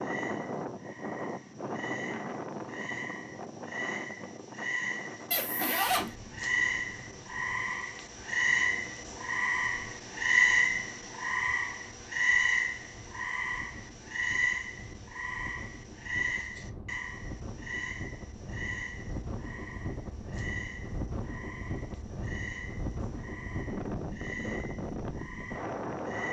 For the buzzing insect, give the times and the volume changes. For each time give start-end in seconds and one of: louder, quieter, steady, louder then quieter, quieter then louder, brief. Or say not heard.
not heard.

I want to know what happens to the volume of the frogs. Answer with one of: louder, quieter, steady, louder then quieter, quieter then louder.
louder then quieter.